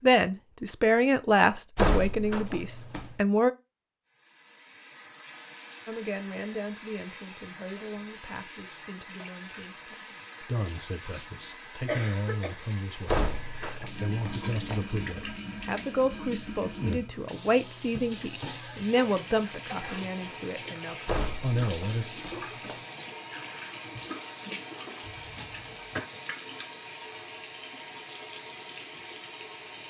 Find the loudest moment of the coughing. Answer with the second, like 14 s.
12 s.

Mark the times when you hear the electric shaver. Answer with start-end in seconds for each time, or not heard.
not heard.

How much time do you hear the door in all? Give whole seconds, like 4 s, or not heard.
5 s.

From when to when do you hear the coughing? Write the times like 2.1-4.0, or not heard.
11.8-12.6, 25.1-26.1.